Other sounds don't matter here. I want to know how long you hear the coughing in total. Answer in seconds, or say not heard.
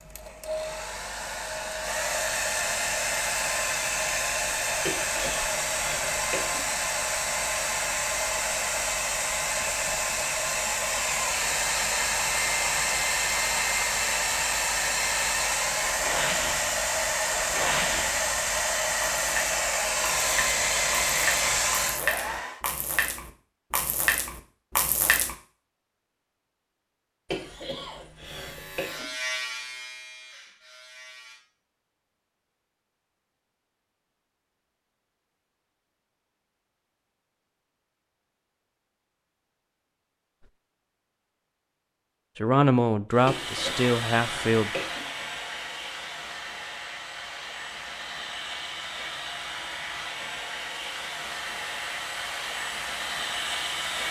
5 s.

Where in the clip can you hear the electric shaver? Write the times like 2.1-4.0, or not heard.
28.2-31.4.